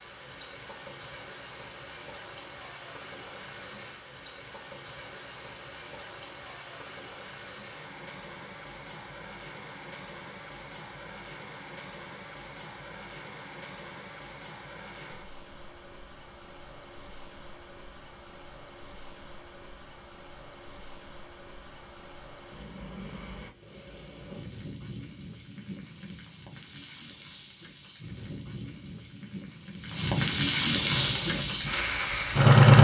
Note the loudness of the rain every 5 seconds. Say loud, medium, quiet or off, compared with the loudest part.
quiet, quiet, quiet, quiet, quiet, quiet, loud.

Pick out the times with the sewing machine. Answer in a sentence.
The sewing machine can be heard from 30.9 to 32.7 s.